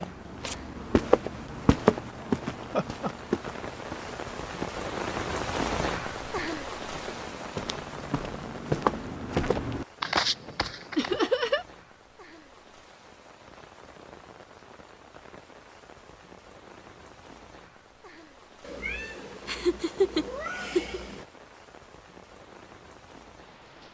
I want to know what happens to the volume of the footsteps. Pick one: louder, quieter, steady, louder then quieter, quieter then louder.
quieter then louder.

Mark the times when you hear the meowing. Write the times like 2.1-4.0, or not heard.
18.6-21.2.